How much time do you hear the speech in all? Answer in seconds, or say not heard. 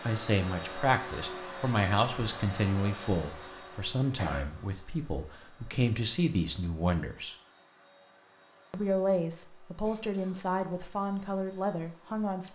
11 s.